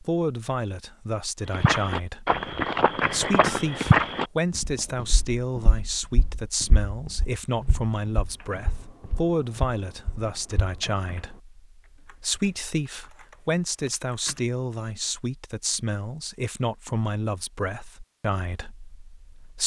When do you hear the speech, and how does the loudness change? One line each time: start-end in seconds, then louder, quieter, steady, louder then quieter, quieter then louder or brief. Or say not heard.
0.0-19.6 steady.